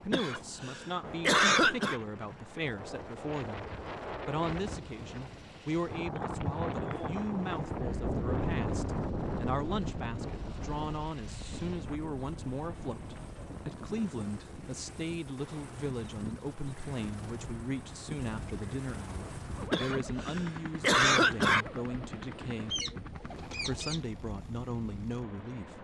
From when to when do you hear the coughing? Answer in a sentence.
You can hear the coughing from 0.1 to 2.0 s and from 19.7 to 21.6 s.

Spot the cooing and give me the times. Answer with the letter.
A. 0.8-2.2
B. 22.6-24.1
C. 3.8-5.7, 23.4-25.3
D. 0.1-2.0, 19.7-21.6
B.